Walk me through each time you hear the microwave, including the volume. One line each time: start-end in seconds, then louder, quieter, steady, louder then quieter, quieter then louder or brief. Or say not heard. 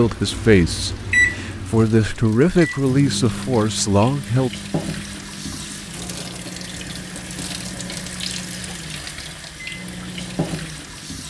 0.0-11.2 quieter.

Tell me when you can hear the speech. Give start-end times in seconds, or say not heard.
0.0-4.5.